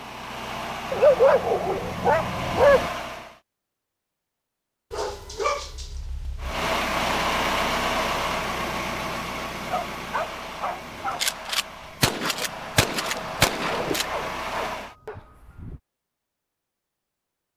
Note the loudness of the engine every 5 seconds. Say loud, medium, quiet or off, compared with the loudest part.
medium, loud, medium, off.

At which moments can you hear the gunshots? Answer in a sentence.
You can hear the gunshots from 11.1 to 14.2 s.